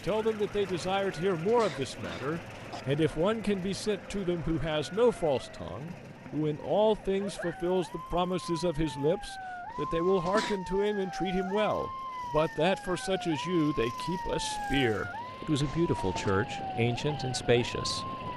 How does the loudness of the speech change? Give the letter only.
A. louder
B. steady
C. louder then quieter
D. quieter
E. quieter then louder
B.